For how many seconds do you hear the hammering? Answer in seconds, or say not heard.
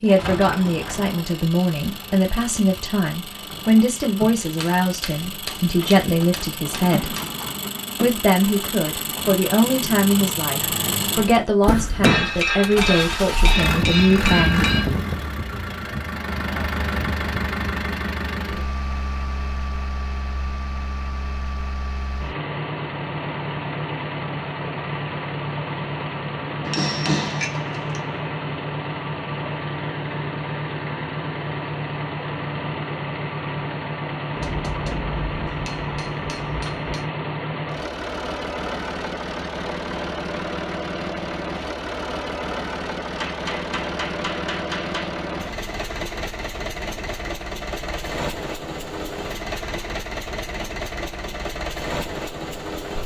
12 s.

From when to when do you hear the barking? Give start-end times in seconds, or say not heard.
not heard.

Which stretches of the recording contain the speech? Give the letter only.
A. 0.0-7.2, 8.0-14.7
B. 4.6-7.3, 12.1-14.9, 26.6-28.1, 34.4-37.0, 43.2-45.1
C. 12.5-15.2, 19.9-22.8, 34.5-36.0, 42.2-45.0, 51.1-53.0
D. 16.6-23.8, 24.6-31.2
A.